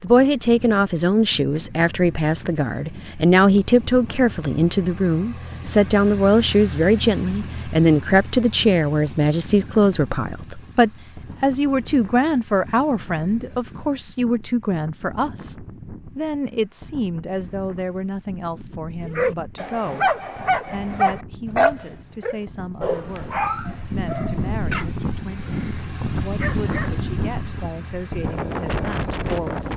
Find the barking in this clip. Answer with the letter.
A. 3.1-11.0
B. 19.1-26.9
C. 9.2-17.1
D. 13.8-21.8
B.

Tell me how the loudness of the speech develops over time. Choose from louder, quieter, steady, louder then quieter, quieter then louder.
quieter.